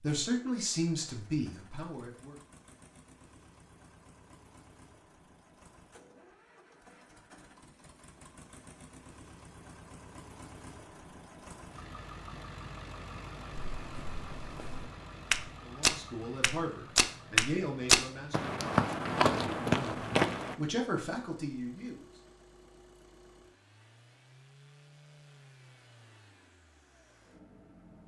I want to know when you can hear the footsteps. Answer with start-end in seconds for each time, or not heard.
13.5-20.6.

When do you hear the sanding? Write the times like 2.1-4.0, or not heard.
not heard.